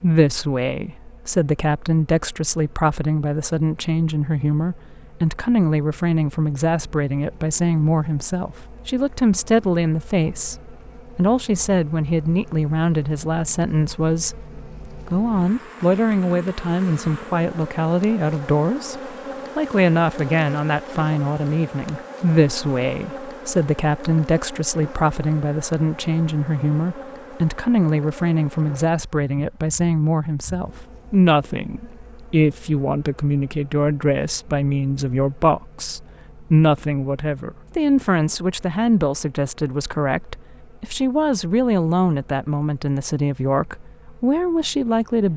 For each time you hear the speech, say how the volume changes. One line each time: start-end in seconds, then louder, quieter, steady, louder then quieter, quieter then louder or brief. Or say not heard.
0.0-45.3 steady.